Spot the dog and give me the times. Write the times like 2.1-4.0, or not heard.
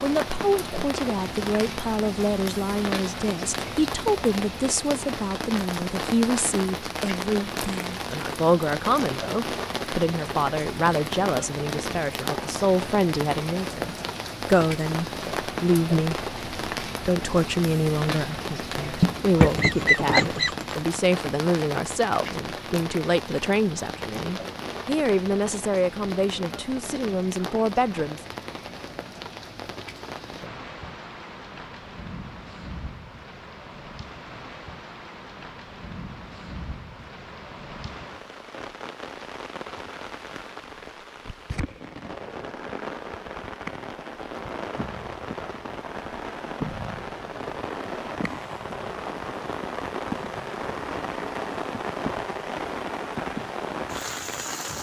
not heard.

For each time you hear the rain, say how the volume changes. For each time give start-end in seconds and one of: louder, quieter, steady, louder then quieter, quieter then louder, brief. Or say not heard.
0.0-54.7 quieter then louder.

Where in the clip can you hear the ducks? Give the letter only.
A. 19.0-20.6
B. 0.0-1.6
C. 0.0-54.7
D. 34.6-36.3
A.